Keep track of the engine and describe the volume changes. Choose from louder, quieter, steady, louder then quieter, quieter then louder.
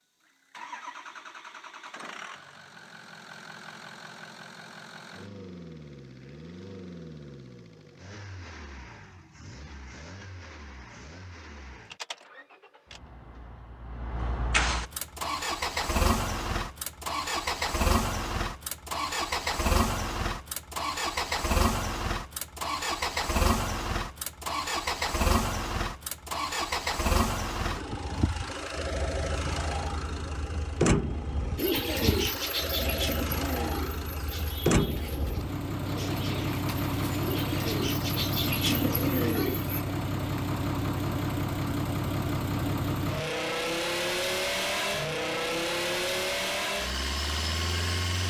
louder.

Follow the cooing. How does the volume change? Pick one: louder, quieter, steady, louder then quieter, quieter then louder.
quieter then louder.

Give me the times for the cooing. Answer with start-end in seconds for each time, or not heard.
31.6-39.9.